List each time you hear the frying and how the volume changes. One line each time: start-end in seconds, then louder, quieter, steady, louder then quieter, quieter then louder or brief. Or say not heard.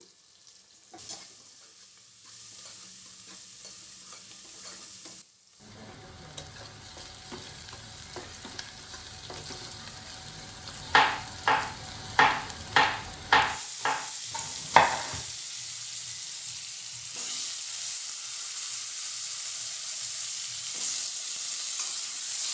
0.0-22.4 louder.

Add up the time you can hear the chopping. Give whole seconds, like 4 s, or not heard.
4 s.